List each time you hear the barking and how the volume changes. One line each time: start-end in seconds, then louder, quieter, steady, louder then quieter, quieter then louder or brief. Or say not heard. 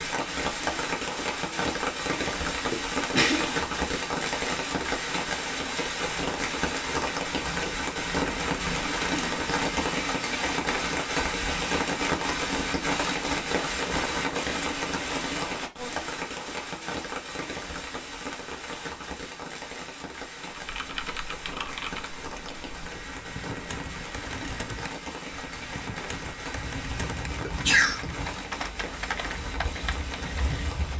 not heard.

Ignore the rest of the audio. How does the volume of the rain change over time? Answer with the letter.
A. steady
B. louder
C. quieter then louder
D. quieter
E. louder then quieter
D.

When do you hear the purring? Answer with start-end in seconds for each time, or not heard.
29.4-30.9.